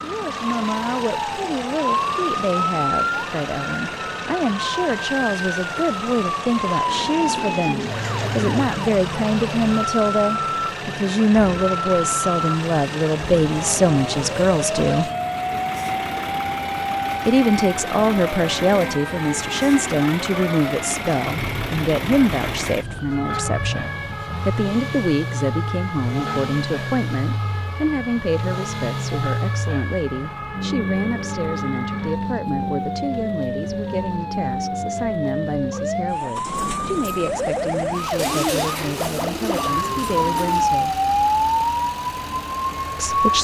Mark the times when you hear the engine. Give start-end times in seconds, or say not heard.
0.0-43.3.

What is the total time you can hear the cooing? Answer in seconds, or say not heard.
4 s.